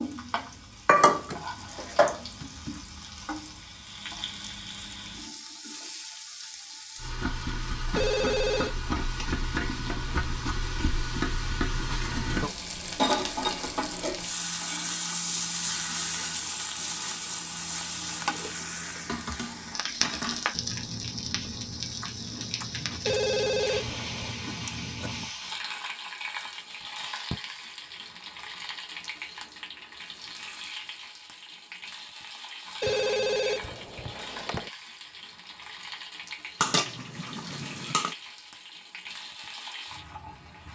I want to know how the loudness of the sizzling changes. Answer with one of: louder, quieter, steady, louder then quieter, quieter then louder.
louder then quieter.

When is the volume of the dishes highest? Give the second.
1 s.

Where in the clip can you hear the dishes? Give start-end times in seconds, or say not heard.
0.8-2.8, 19.1-20.6, 36.6-38.1.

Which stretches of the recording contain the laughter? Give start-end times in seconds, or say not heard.
not heard.